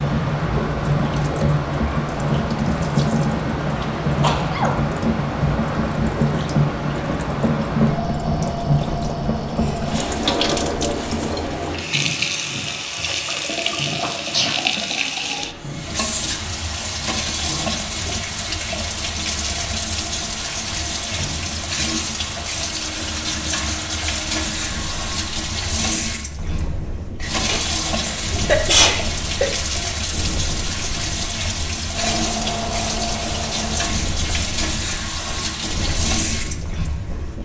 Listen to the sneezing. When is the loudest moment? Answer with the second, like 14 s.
29 s.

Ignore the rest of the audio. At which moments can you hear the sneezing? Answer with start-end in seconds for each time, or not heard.
4.2-4.8, 14.0-14.6, 27.4-29.5.